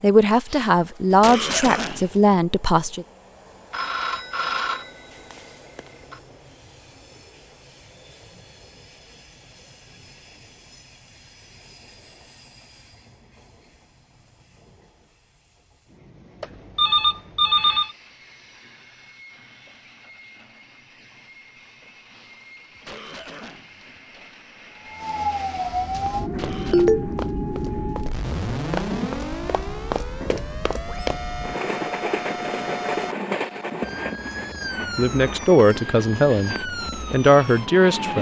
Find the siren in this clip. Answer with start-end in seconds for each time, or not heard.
24.7-38.1.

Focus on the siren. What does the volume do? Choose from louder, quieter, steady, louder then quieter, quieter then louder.
quieter.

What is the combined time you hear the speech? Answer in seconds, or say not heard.
6 s.